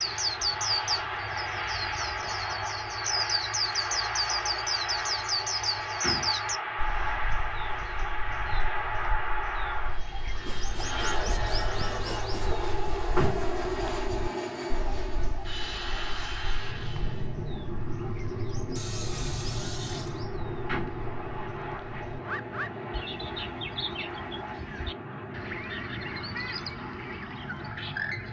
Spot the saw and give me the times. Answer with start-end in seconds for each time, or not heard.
10.4-12.6, 18.8-20.2.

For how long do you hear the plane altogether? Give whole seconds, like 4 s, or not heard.
28 s.